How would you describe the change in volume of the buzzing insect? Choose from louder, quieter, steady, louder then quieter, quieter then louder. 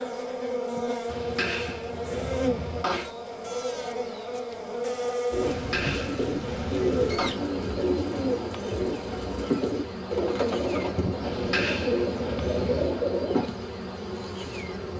steady.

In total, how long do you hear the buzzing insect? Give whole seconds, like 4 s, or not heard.
15 s.